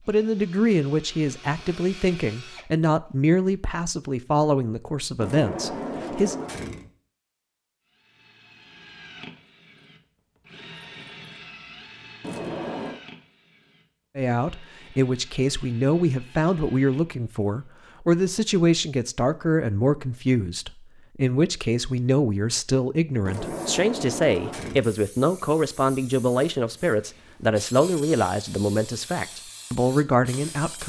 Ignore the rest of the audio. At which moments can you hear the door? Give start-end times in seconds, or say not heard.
5.2-6.9, 12.2-13.0, 23.2-24.9.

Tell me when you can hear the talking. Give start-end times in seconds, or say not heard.
0.1-6.3, 14.2-30.8.